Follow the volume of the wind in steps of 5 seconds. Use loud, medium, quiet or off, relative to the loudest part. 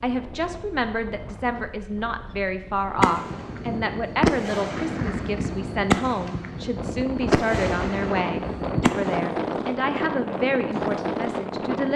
quiet, loud, loud.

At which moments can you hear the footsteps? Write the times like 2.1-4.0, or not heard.
not heard.